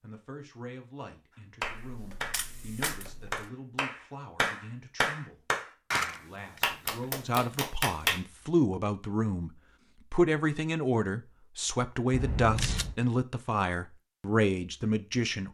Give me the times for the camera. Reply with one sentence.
The camera can be heard from 1.6 to 3.5 s, from 6.0 to 6.6 s and from 12.1 to 13.0 s.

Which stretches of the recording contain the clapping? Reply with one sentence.
The clapping can be heard from 1.6 to 8.2 s.